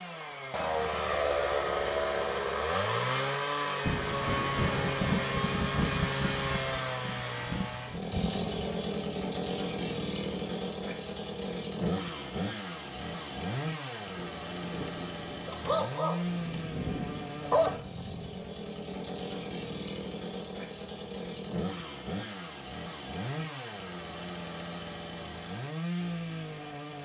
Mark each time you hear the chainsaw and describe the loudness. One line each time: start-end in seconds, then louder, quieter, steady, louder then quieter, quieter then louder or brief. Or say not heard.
0.0-27.0 quieter.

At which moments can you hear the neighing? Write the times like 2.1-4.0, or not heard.
not heard.